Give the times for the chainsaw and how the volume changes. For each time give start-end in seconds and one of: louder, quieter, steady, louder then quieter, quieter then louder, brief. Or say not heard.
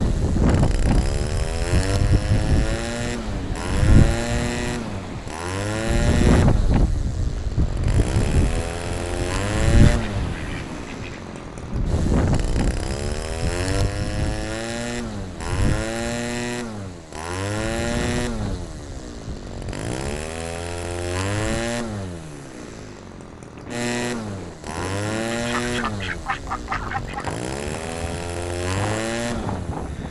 0.0-30.0 steady.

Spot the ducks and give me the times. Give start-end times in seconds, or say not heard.
9.8-11.3, 25.3-27.3.